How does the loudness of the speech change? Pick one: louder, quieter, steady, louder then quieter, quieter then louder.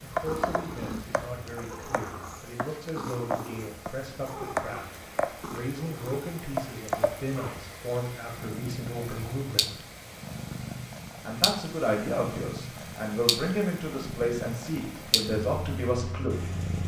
louder.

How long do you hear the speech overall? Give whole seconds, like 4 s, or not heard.
15 s.